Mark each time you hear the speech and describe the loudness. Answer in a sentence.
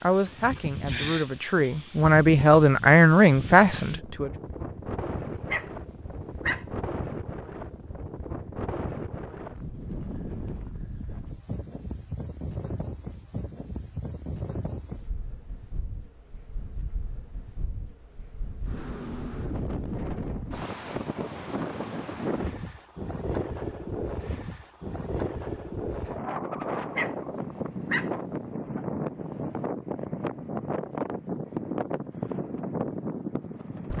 You can hear the speech from 0.0 to 4.3 s, getting louder.